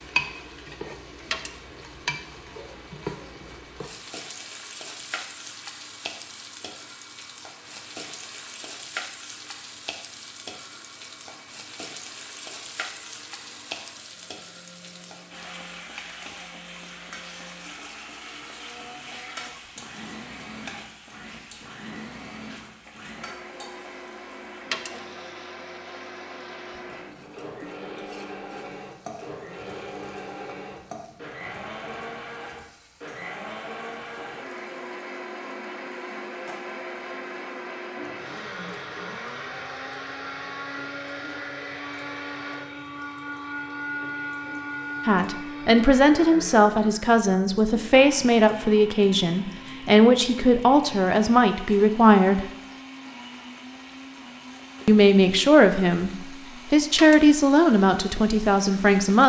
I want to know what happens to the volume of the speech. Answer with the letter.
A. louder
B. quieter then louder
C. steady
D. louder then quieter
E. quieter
C.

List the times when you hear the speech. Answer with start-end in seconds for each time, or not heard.
45.0-52.5, 54.9-59.2.